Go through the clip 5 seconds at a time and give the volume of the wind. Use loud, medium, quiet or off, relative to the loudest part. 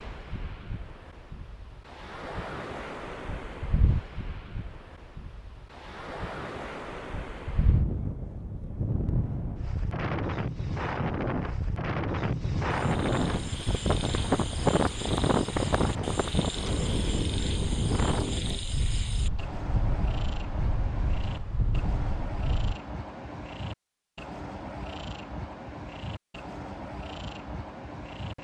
medium, medium, loud, loud, medium, off.